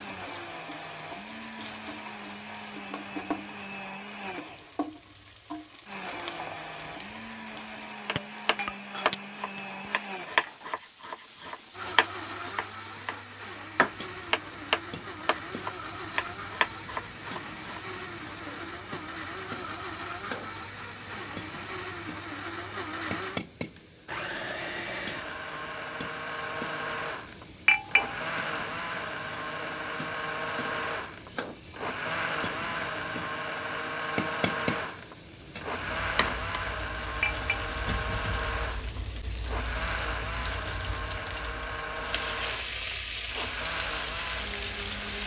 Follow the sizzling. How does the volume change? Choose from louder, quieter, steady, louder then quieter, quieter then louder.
louder.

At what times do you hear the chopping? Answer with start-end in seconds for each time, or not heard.
8.1-17.8.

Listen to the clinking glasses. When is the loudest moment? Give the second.
28 s.